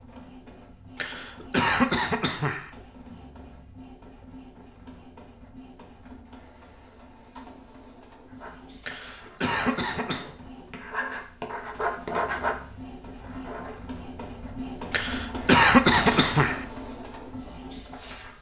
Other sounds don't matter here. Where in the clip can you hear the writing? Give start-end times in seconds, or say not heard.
8.2-13.8.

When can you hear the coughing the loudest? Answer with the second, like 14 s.
16 s.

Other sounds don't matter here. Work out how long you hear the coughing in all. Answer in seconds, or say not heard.
5 s.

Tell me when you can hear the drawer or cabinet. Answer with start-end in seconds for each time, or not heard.
15.9-16.5.